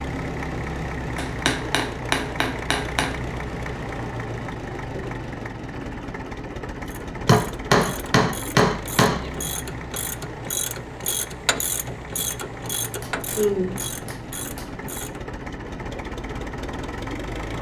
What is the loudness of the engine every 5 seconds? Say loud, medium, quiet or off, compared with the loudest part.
loud, loud, medium, loud.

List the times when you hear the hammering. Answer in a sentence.
The hammering can be heard from 1.1 to 3.1 s, from 7.2 to 9.2 s and from 12.8 to 14.8 s.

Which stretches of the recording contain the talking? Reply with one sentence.
The talking can be heard from 13.3 to 13.8 s.